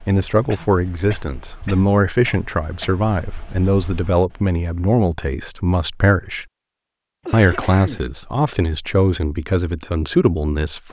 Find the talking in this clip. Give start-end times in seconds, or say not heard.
0.1-6.5, 7.3-10.8.